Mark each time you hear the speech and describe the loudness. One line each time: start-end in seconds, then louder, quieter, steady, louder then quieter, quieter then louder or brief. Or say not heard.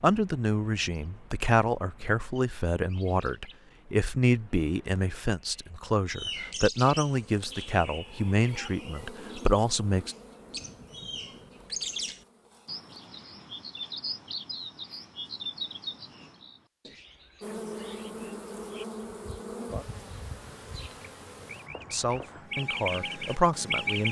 0.0-10.2 steady
21.9-24.0 brief.